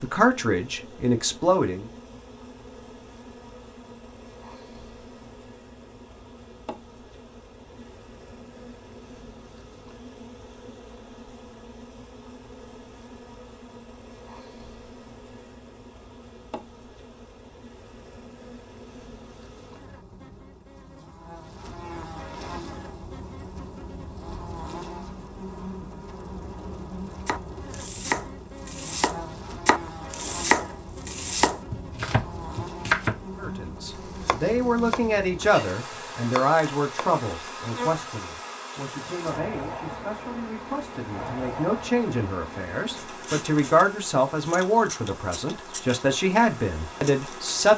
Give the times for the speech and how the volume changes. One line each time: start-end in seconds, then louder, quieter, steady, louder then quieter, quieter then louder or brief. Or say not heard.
0.0-1.9 brief
33.4-47.7 quieter then louder.